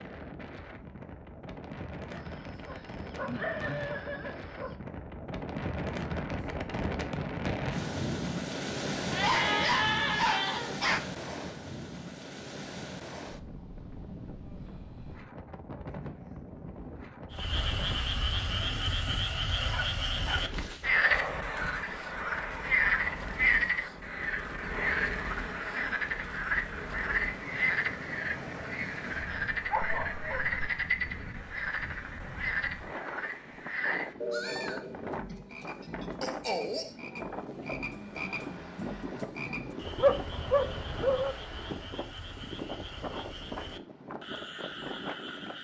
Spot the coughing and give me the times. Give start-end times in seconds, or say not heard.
not heard.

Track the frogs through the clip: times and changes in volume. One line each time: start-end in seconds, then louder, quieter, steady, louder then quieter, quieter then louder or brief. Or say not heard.
17.3-45.6 quieter.